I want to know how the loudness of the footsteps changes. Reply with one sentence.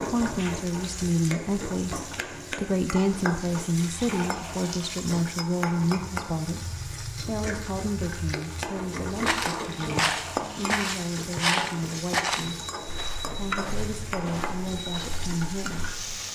The volume of the footsteps goes down.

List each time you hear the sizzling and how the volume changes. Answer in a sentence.
The sizzling can be heard from 0.0 to 16.3 s, at a steady volume.